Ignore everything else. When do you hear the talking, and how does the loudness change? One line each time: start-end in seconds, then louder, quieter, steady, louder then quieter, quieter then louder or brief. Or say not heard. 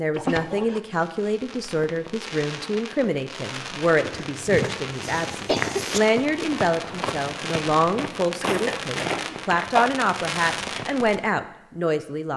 0.0-12.3 steady.